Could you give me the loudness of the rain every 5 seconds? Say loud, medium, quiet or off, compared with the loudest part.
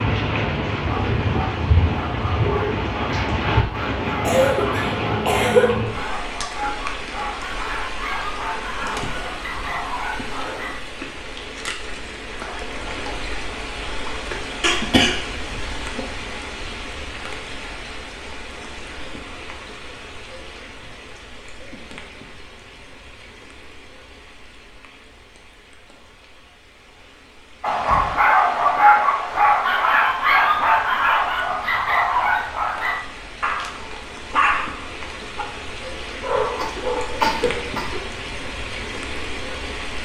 loud, medium, medium, medium, quiet, quiet, quiet, medium.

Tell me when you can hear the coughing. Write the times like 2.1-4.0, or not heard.
4.2-5.7, 14.6-15.8, 36.5-38.0.